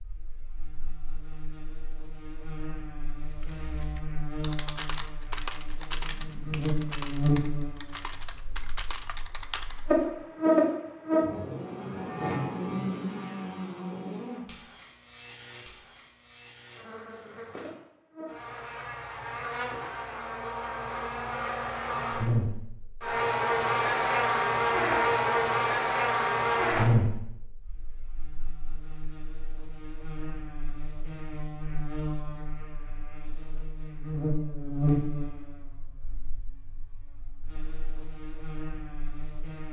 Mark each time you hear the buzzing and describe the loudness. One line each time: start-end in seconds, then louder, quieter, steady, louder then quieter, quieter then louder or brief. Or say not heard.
0.0-39.6 louder then quieter.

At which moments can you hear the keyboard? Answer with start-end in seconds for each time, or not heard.
3.2-10.1.